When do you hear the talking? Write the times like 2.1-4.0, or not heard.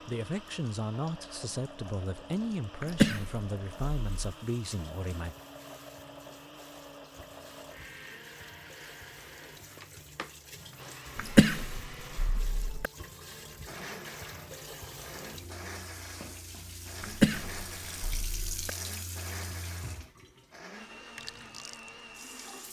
0.1-5.3.